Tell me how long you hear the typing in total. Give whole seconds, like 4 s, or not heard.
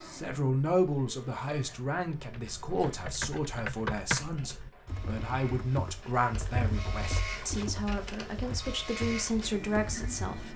8 s.